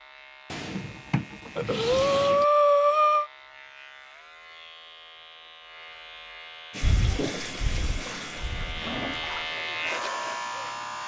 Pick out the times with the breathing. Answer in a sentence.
You can hear the breathing from 1.6 to 3.3 s and from 6.8 to 8.8 s.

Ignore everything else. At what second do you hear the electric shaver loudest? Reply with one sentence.
The volume of the electric shaver peaks at 10 seconds.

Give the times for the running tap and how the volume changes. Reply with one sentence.
The running tap can be heard from 6.7 to 11.0 s, getting quieter.